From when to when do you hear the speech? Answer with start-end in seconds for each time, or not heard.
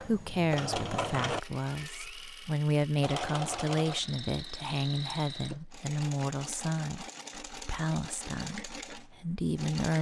0.0-9.9.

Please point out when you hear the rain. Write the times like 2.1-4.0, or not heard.
not heard.